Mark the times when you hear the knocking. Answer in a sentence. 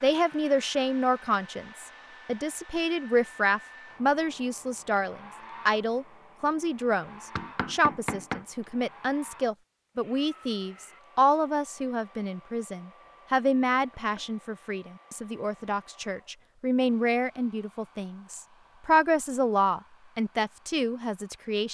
The knocking can be heard from 7.3 to 8.4 s and from 13.7 to 14.3 s.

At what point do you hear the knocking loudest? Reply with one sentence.
The loudest moment of the knocking is at 8 seconds.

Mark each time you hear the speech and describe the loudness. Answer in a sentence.
You can hear the speech from 0.0 to 21.6 s, at a steady volume.